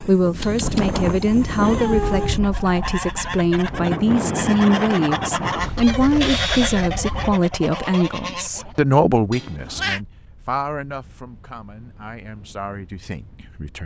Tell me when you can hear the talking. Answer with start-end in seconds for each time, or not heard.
0.1-13.8.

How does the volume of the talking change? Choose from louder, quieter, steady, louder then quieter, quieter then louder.
quieter.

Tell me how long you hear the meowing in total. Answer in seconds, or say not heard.
4 s.